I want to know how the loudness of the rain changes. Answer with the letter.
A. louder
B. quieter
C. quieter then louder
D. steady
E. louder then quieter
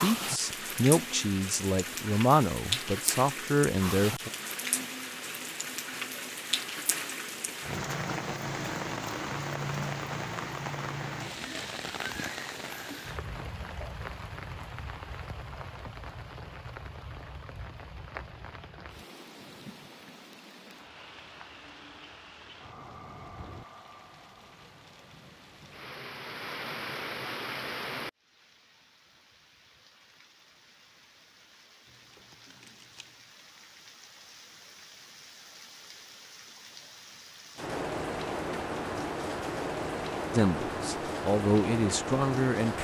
C.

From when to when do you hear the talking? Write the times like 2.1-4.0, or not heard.
0.0-4.3, 40.3-42.7.